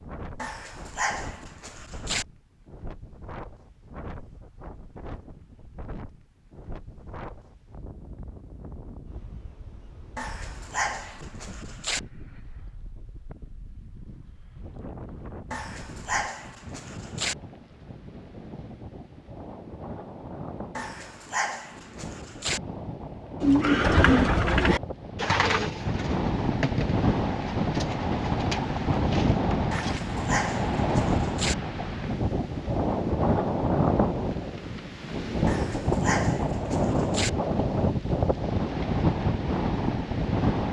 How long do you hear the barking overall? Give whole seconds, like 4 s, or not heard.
11 s.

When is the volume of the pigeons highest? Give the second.
24 s.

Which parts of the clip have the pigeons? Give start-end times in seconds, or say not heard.
23.4-30.0.